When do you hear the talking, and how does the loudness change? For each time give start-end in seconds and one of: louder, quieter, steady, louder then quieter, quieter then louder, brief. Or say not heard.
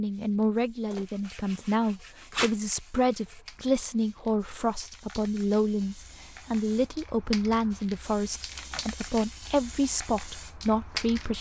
0.0-11.3 steady.